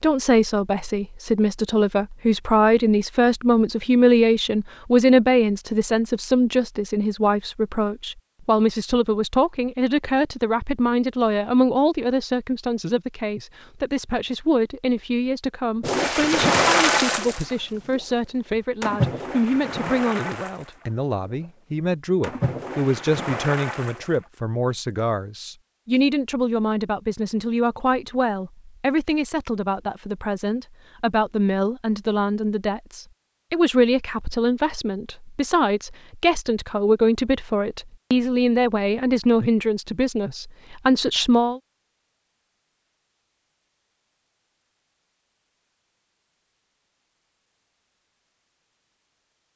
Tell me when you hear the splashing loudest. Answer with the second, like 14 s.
17 s.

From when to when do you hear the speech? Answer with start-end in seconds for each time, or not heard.
0.0-41.6.